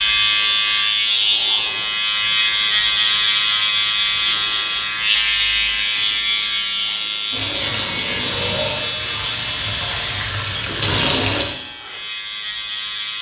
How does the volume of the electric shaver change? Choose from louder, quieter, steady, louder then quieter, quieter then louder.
quieter.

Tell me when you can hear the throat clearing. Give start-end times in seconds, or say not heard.
not heard.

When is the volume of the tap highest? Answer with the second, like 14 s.
11 s.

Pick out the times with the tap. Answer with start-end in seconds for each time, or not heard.
7.3-11.4.